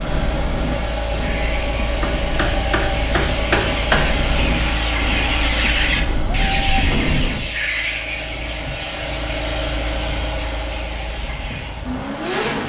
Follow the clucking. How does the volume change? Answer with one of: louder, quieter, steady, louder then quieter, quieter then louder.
louder then quieter.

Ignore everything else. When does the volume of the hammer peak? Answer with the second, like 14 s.
4 s.